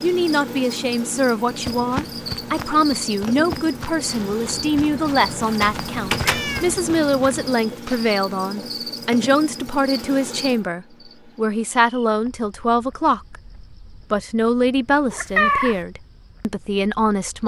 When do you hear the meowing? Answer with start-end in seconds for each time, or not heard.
5.6-6.8, 15.1-15.8.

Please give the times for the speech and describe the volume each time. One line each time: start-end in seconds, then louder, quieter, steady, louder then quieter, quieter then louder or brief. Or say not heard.
0.0-17.4 steady.